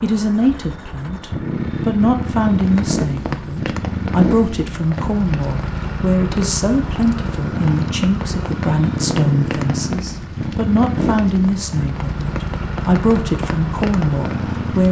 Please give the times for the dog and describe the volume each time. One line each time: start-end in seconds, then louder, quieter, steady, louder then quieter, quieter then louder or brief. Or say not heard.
not heard.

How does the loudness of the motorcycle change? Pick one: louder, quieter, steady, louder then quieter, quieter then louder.
steady.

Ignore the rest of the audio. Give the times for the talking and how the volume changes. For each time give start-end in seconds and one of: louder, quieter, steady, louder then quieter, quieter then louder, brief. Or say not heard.
0.0-14.8 steady.